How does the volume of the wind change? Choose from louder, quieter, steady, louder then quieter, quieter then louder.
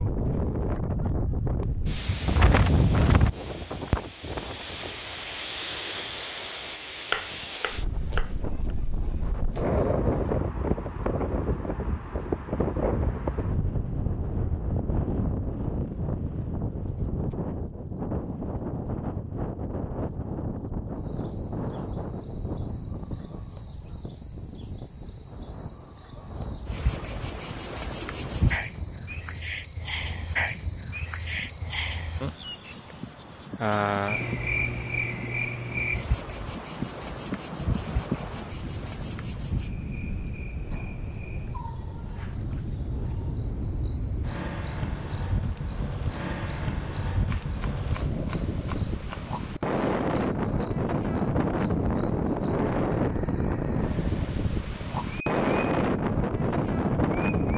quieter then louder.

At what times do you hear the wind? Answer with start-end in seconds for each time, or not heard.
0.0-57.5.